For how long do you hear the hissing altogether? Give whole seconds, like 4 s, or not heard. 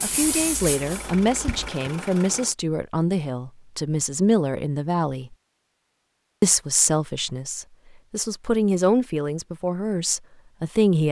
2 s.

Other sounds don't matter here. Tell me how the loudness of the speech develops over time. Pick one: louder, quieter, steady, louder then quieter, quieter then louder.
steady.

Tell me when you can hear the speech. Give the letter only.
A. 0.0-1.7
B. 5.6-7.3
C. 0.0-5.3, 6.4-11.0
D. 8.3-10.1
C.